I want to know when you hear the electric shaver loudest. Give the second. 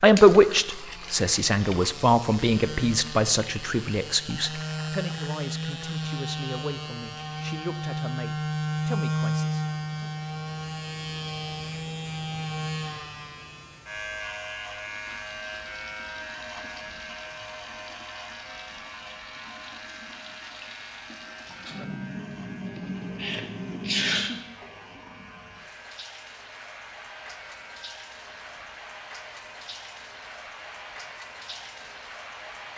9 s.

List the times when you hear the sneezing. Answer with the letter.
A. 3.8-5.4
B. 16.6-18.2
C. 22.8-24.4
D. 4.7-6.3
C.